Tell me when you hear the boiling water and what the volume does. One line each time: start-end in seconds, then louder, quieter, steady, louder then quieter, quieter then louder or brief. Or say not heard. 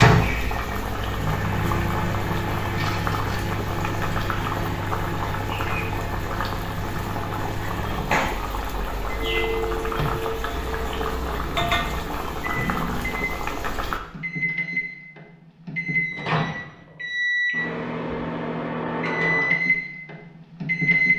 0.0-14.0 steady.